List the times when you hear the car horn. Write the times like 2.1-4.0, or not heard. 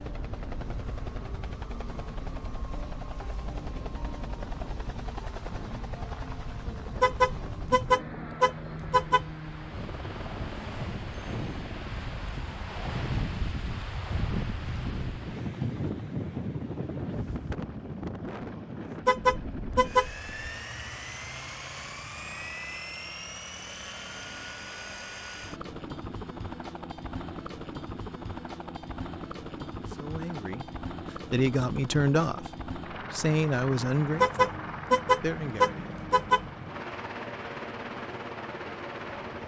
7.0-9.3, 19.1-20.1, 34.2-36.4.